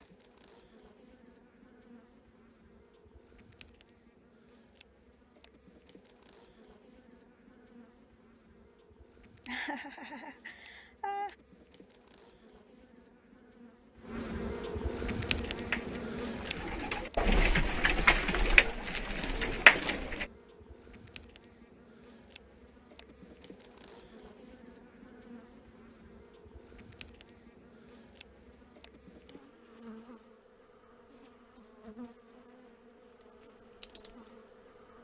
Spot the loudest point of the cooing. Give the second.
20 s.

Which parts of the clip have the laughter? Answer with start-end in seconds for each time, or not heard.
9.4-11.3.